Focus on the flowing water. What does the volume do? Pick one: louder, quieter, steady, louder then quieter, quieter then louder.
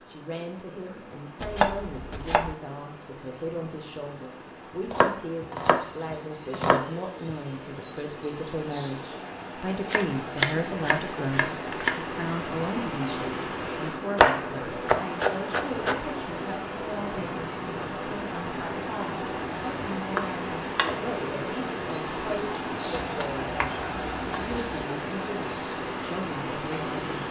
louder.